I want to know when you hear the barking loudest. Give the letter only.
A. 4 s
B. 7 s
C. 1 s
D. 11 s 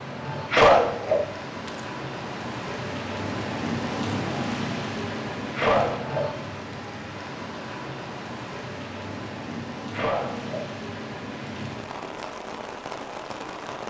C.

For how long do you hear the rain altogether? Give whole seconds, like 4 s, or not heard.
14 s.